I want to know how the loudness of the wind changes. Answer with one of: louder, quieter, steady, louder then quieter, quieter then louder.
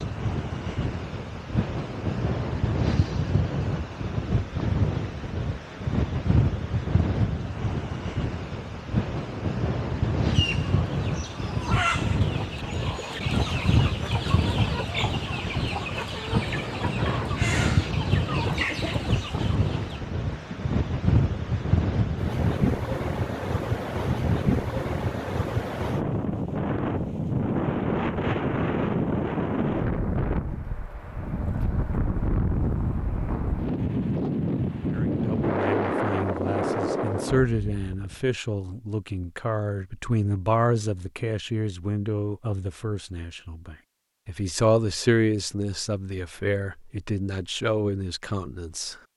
steady.